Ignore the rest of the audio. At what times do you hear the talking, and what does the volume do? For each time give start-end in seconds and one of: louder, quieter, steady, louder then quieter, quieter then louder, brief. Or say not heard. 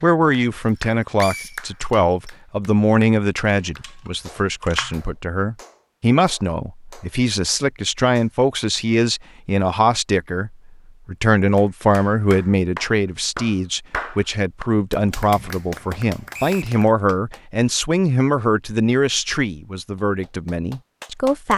0.0-21.5 steady.